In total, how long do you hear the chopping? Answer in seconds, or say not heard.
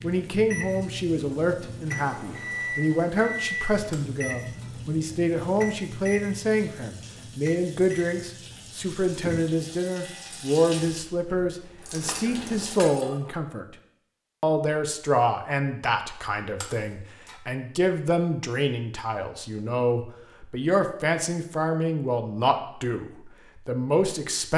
not heard.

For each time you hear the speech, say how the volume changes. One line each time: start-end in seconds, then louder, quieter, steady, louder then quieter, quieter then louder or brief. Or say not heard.
0.0-13.7 steady
14.4-24.5 steady.